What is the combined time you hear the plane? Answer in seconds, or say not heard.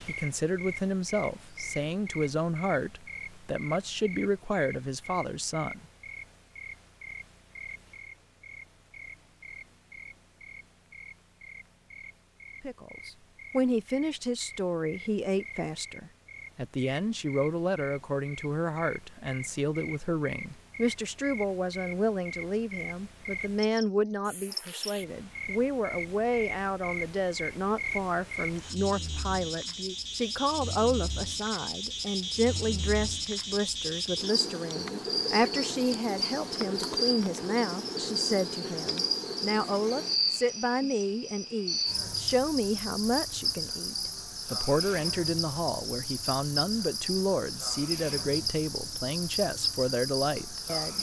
not heard.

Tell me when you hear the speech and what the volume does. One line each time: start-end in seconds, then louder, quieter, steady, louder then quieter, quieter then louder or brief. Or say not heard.
0.1-5.8 steady
12.6-50.9 steady.